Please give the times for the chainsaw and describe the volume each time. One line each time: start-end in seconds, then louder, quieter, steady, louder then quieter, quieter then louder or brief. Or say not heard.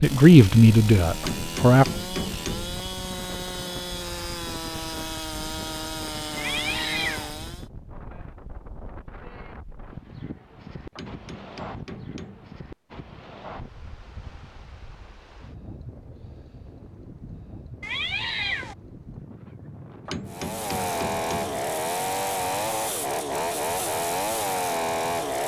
0.0-7.7 steady
20.2-25.4 steady.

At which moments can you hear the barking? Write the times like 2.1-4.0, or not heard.
not heard.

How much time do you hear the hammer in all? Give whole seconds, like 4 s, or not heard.
5 s.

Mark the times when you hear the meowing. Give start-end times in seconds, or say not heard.
6.3-7.3, 17.8-18.8.